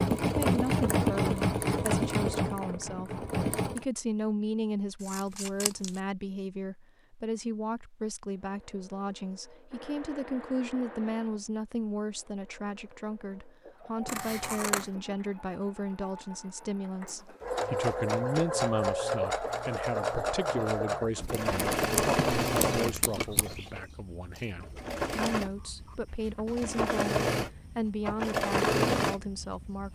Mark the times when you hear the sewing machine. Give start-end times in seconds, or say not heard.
0.0-3.9, 8.3-29.9.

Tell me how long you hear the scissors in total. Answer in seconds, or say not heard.
4 s.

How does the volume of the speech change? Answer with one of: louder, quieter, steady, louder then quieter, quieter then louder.
steady.